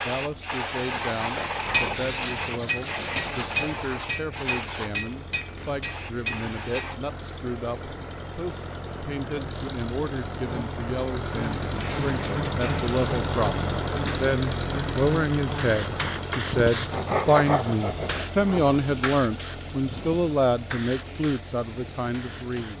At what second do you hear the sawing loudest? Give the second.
17 s.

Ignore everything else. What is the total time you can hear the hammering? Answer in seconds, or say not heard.
5 s.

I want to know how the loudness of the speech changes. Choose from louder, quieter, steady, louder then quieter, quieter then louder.
louder.